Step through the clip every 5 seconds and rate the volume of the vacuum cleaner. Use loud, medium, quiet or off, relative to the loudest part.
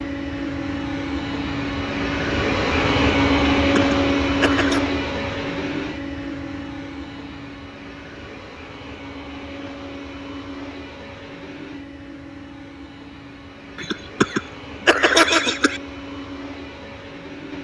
loud, medium, quiet, quiet.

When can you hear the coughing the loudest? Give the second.
15 s.